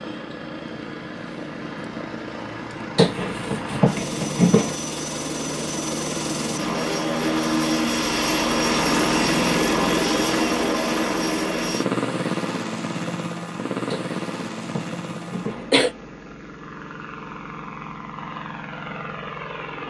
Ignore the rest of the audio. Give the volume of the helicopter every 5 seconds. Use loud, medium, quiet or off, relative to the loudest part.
medium, loud, loud, quiet.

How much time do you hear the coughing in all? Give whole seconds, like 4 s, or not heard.
4 s.